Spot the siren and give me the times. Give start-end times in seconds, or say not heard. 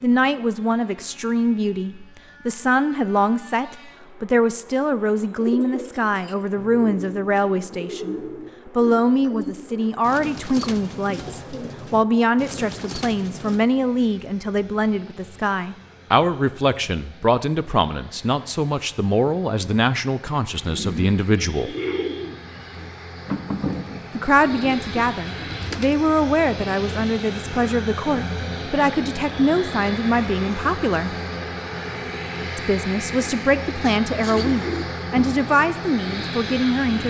not heard.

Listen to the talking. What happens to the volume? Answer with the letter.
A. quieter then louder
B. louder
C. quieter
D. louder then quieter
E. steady
E.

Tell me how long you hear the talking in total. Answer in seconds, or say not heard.
33 s.